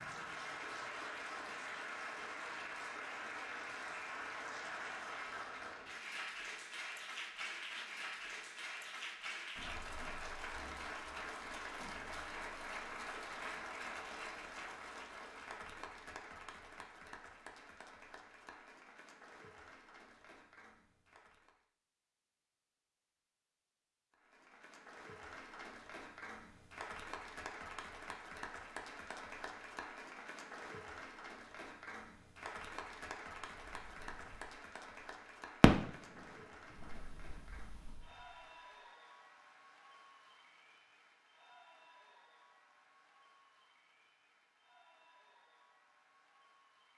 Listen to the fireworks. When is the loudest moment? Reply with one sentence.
The loudest moment of the fireworks is at 36 seconds.